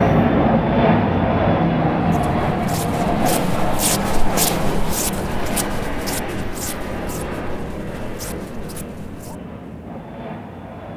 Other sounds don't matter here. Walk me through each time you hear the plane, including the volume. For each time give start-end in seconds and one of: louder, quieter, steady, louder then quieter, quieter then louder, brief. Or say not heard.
0.0-10.9 quieter.